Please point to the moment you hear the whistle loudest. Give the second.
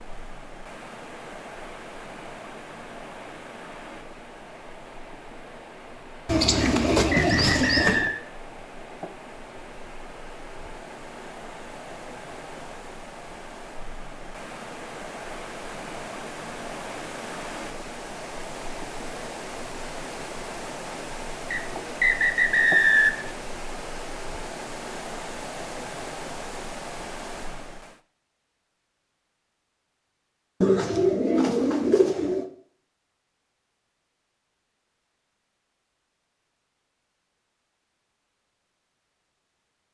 23 s.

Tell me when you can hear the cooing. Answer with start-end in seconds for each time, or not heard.
6.2-8.1, 30.6-32.5.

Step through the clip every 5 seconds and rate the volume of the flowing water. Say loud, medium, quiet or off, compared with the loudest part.
medium, medium, medium, loud, loud, loud, off, off.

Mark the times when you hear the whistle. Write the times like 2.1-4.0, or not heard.
6.6-8.2, 21.5-23.3.